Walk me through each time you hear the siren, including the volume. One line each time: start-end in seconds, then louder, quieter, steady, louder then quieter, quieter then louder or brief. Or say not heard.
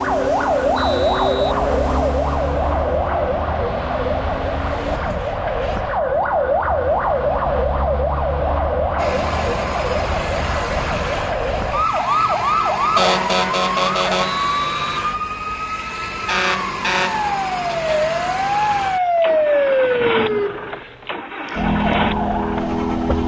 0.0-23.2 steady.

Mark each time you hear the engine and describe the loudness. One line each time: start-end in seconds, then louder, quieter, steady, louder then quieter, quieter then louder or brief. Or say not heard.
0.0-5.0 quieter
8.9-23.2 steady.